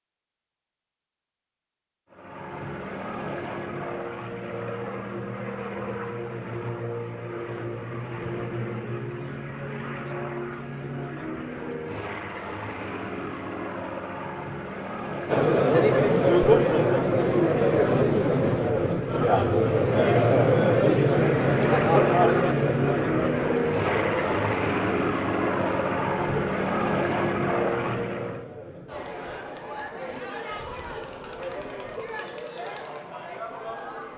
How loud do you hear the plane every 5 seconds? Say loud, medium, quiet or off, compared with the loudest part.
medium, medium, medium, medium, loud, loud, off.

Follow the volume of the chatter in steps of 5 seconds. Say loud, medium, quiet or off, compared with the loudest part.
off, off, off, loud, loud, quiet, quiet.